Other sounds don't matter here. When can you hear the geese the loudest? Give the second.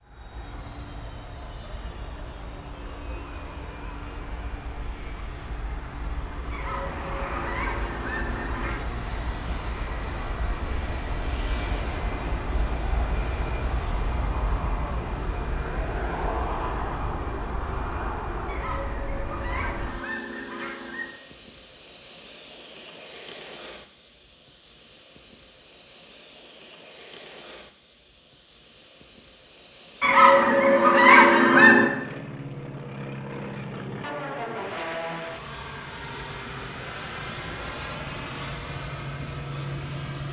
31 s.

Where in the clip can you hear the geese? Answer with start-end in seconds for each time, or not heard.
6.5-8.8, 18.4-21.1, 30.0-31.9.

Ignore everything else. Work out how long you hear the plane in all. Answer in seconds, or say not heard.
40 s.